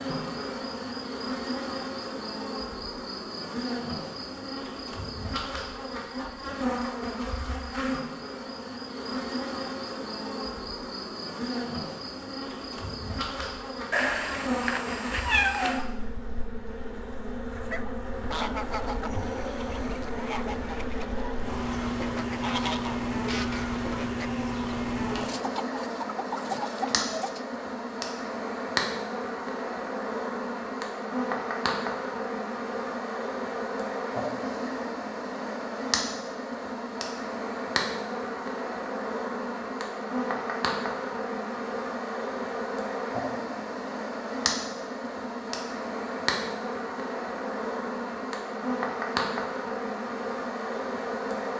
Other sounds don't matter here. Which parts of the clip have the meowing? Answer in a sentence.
You can hear the meowing from 13.9 to 15.8 s.